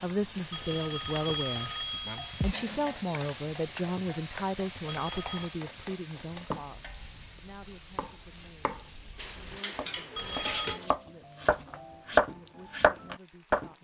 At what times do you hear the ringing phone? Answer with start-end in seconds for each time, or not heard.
0.5-2.5, 4.8-5.5, 10.2-10.8.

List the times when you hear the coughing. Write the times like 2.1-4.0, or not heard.
not heard.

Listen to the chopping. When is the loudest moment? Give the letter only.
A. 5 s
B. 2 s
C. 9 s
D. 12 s
D.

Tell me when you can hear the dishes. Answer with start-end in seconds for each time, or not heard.
2.4-3.0, 9.2-10.9.